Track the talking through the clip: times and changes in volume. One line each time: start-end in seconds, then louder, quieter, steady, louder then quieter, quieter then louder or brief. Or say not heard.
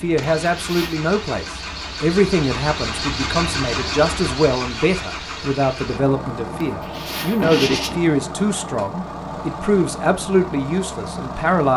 0.0-11.7 steady.